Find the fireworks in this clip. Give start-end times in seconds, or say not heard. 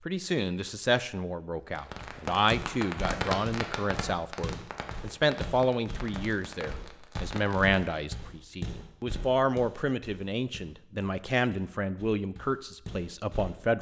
1.6-7.8.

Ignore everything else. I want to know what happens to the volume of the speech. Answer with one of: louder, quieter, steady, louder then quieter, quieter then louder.
steady.